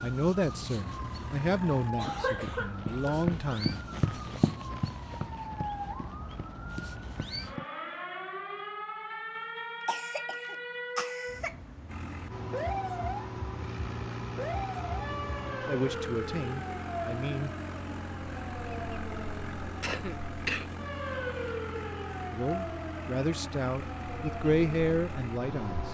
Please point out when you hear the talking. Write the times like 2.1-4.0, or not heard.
0.0-3.8, 15.7-17.5, 22.3-25.9.